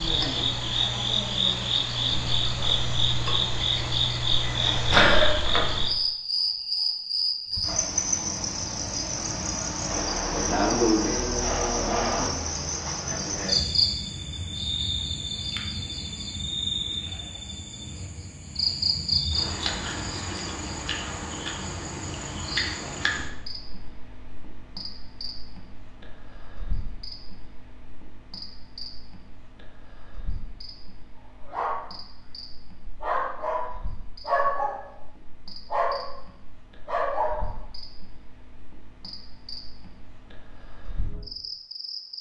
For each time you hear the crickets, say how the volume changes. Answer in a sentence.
The crickets can be heard from 0.0 to 42.1 s, getting quieter.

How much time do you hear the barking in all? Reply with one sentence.
The barking can be heard for 7 seconds in total.